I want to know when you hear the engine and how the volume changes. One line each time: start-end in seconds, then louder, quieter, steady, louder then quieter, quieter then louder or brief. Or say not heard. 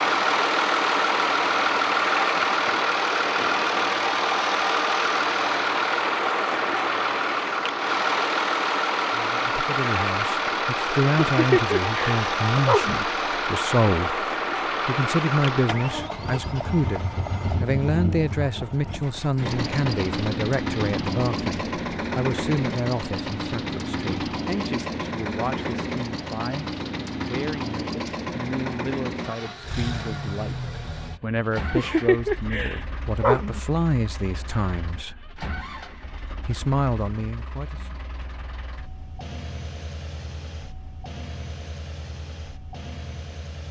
0.0-43.6 quieter.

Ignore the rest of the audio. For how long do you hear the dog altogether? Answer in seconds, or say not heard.
4 s.